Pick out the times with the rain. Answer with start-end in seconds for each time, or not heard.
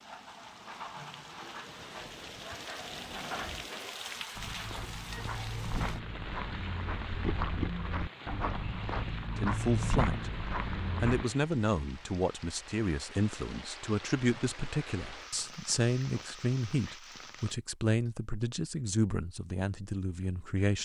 0.0-17.6.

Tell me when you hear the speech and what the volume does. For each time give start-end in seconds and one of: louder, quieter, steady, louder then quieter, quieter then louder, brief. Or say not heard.
9.3-10.3 brief
11.0-20.8 steady.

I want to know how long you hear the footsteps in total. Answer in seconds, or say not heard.
7 s.